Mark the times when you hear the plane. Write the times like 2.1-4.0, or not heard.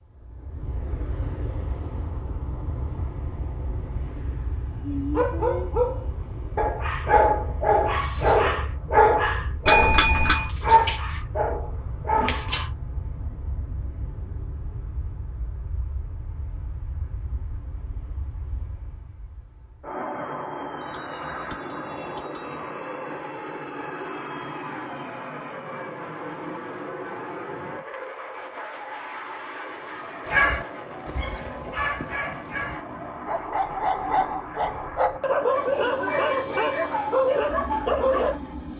0.0-38.7.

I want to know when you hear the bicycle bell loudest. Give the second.
10 s.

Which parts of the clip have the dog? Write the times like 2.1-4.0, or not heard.
4.8-12.7, 30.2-38.4.